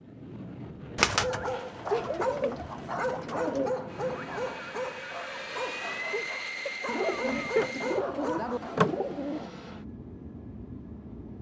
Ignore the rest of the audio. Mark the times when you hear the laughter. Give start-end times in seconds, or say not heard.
1.9-2.6, 6.1-7.8.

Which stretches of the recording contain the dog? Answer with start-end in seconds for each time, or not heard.
1.1-8.8.